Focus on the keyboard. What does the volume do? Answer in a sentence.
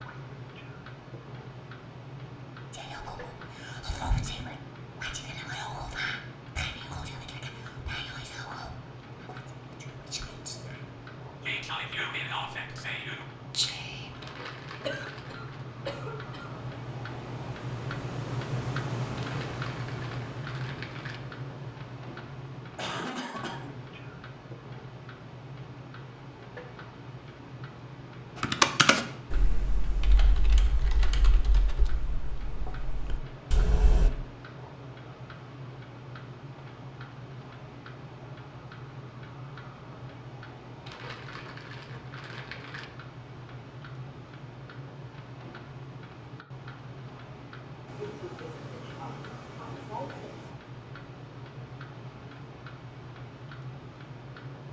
The loudness of the keyboard goes down, then up.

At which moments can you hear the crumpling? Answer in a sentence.
The crumpling can be heard from 14.2 to 15.7 s, from 19.1 to 21.2 s and from 40.9 to 42.9 s.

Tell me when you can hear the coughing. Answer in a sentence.
You can hear the coughing from 14.8 to 16.5 s, from 22.8 to 23.8 s and from 47.9 to 50.5 s.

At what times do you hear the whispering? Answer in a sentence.
You can hear the whispering from 2.7 to 14.2 s.